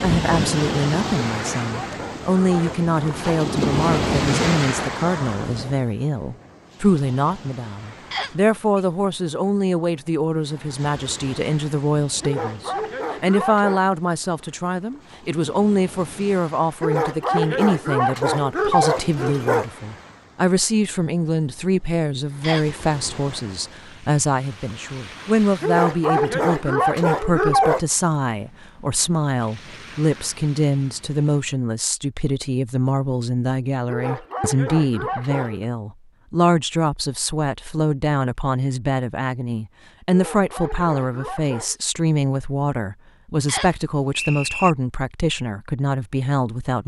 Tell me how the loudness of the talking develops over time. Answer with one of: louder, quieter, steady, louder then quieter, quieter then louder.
steady.